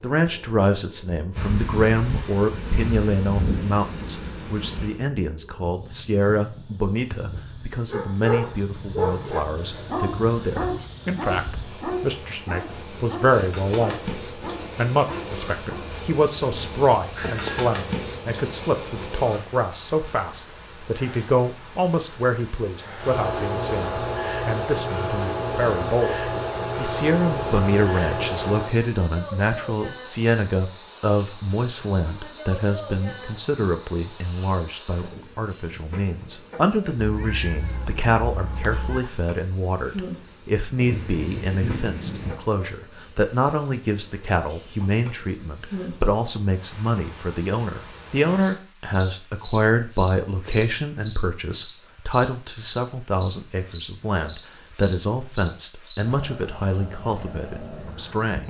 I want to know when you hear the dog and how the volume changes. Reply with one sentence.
You can hear the dog from 7.9 to 15.9 s, getting quieter.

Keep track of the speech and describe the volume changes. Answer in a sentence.
The volume of the speech stays about the same.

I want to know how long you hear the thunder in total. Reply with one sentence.
The thunder can be heard for 5 seconds in total.